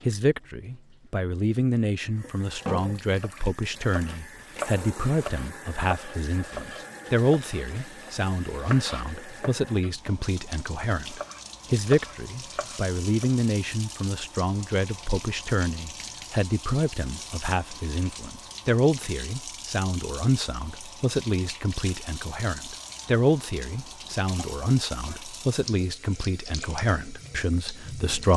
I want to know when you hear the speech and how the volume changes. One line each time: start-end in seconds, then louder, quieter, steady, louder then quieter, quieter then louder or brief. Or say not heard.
0.1-28.3 steady.